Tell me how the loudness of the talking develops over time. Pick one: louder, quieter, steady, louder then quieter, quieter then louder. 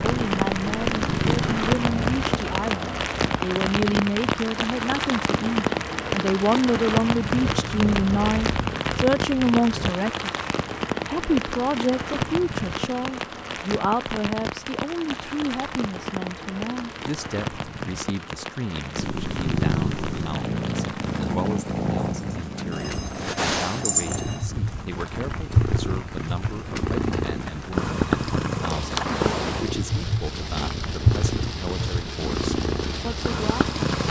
quieter.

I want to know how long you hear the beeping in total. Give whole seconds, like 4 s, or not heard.
2 s.